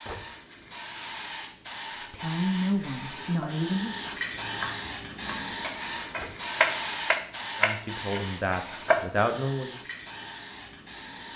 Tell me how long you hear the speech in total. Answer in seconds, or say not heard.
4 s.